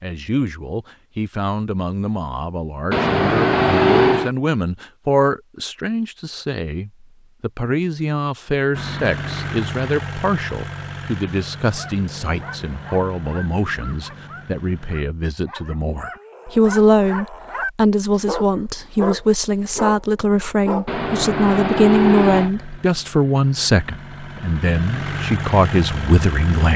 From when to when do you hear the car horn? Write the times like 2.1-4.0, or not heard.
2.9-4.3, 20.9-22.5.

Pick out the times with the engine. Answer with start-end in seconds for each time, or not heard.
8.7-15.1, 22.3-26.7.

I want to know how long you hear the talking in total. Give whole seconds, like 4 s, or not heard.
27 s.